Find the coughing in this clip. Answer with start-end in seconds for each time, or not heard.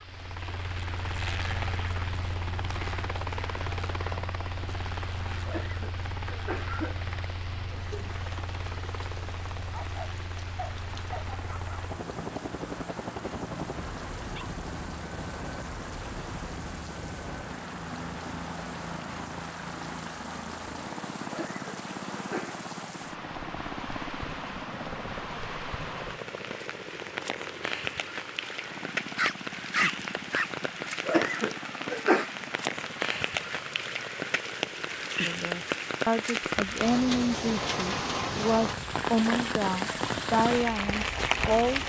5.5-7.0, 21.2-22.6, 31.1-32.3.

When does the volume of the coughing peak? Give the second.
32 s.